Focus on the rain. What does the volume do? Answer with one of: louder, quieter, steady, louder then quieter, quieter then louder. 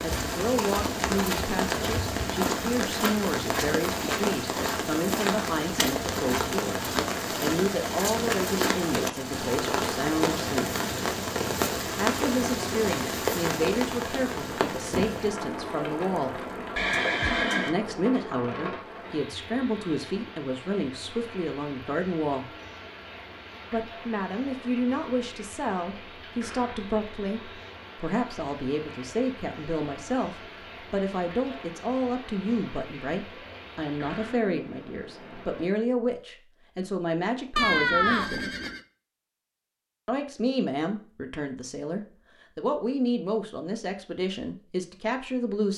quieter.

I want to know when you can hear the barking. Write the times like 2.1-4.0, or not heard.
not heard.